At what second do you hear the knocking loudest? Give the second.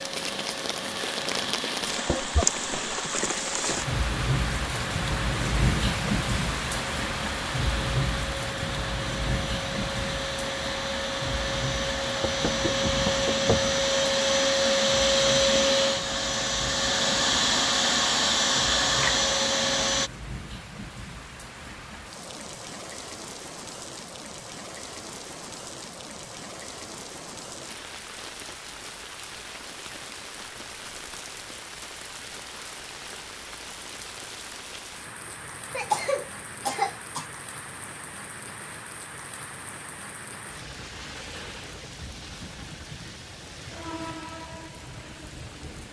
13 s.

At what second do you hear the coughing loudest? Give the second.
36 s.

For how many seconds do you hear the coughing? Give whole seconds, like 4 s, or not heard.
2 s.